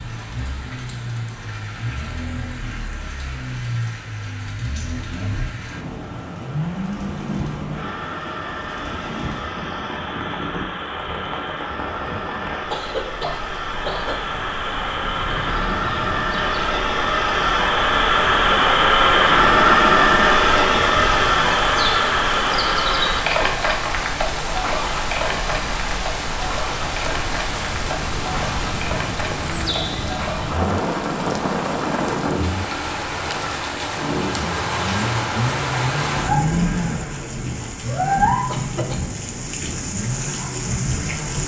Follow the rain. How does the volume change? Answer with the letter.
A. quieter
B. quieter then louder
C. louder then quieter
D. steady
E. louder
E.